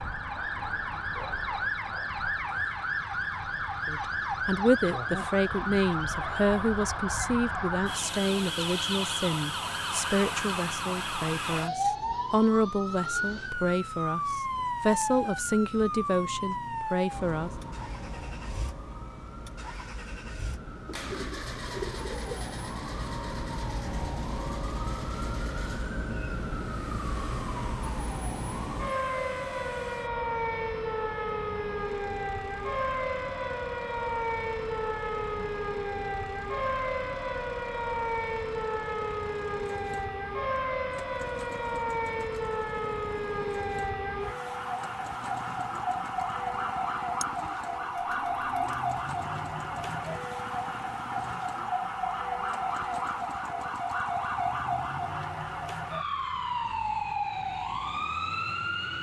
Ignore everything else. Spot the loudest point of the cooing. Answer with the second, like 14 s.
22 s.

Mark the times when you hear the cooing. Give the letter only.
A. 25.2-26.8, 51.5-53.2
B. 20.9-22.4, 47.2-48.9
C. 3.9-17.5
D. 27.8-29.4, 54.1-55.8
B.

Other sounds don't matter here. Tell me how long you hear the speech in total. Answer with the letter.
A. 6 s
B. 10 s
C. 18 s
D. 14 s
D.